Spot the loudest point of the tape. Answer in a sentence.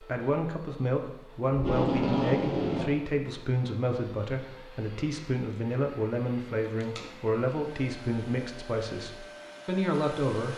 The volume of the tape peaks at 2 seconds.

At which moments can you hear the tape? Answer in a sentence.
You can hear the tape from 1.5 to 3.0 s and from 6.8 to 7.3 s.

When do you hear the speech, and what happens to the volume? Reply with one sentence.
The speech can be heard from 0.0 to 10.5 s, at a steady volume.